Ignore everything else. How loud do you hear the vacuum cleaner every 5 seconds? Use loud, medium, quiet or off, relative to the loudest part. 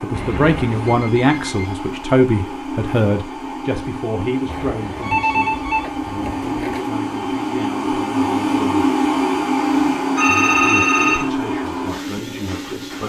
medium, loud, loud.